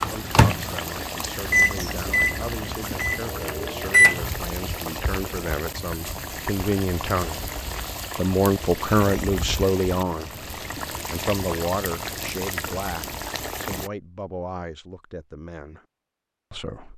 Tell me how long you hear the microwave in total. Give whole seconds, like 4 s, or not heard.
4 s.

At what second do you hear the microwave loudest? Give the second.
4 s.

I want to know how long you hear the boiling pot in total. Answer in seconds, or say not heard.
14 s.